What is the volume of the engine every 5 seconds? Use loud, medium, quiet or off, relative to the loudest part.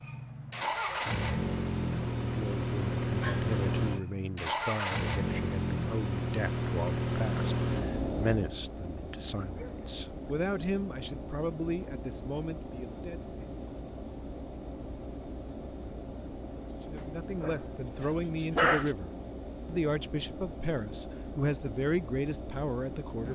loud, loud, medium, medium, medium.